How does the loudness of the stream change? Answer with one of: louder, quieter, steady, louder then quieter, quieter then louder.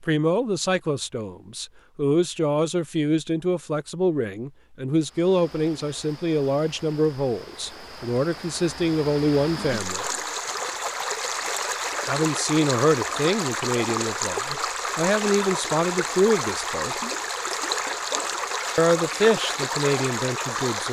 louder.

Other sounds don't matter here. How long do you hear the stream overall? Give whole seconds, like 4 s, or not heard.
16 s.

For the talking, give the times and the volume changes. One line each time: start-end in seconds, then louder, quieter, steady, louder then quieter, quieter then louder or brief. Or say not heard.
0.0-10.1 steady
12.1-16.9 quieter then louder
18.8-20.8 brief.